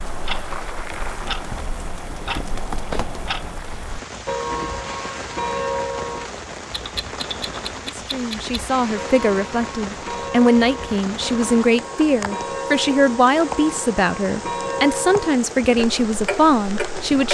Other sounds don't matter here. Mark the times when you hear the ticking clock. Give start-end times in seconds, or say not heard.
0.0-17.2.